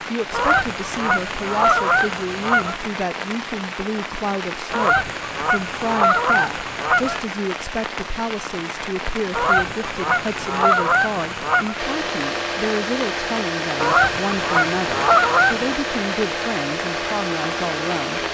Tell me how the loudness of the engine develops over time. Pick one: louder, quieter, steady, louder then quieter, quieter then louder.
steady.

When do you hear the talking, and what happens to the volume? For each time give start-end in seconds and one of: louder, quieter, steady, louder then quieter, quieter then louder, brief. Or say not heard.
0.0-18.2 steady.